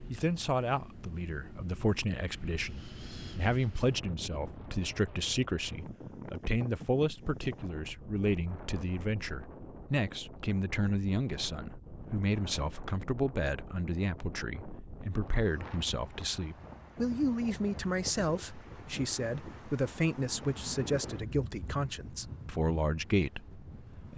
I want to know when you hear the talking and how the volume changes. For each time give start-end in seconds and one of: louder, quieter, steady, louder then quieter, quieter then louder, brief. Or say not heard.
0.1-24.1 steady.